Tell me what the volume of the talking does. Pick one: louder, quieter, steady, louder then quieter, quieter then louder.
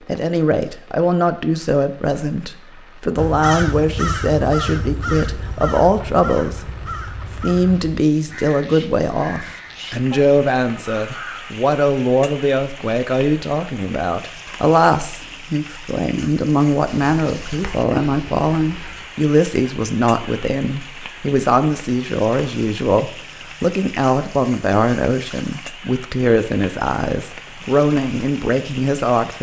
steady.